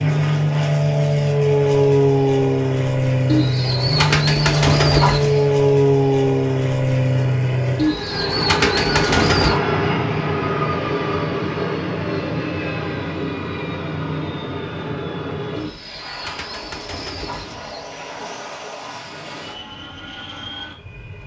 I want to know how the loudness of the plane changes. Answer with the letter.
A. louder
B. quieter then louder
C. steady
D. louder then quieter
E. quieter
E.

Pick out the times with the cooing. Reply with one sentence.
You can hear the cooing from 3.2 to 5.5 s, from 7.8 to 9.6 s and from 15.6 to 17.9 s.